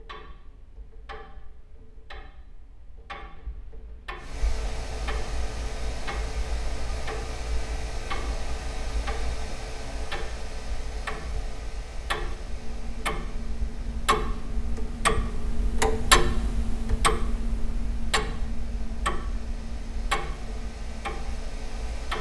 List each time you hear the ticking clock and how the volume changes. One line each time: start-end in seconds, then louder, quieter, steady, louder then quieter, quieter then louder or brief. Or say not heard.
0.0-22.1 louder then quieter.